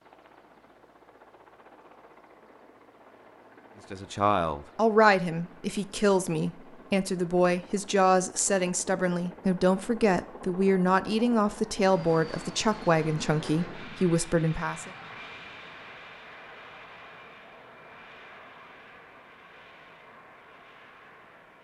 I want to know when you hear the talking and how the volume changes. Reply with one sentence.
You can hear the talking from 3.9 to 14.9 s, at a steady volume.